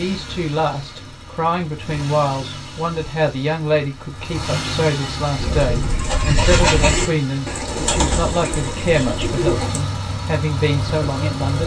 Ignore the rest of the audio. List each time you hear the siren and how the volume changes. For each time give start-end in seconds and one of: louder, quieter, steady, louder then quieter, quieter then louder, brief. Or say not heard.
not heard.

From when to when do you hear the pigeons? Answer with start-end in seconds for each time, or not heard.
5.3-9.8.